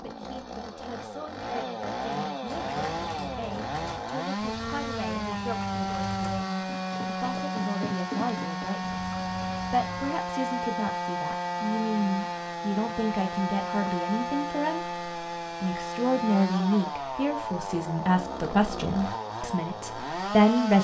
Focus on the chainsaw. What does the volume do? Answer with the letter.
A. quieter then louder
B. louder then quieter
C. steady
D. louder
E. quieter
C.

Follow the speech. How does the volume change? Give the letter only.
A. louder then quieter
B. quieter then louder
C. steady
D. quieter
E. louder
E.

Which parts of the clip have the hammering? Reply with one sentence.
The hammering can't be heard in this clip.